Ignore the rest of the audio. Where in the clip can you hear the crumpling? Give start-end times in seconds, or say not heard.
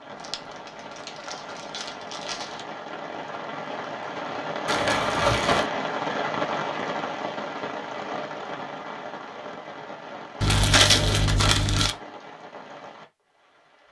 0.1-2.6, 4.7-5.7, 10.4-11.9.